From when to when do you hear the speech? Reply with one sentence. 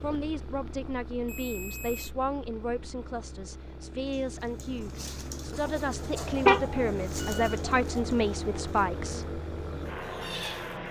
The speech can be heard from 0.0 to 9.4 s.